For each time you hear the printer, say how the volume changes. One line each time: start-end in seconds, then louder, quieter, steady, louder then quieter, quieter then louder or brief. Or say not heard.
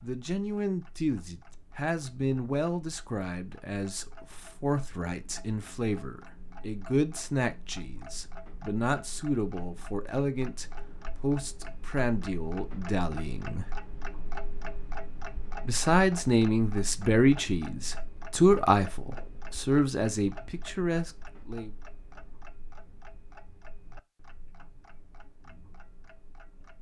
not heard.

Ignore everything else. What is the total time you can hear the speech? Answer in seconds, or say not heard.
20 s.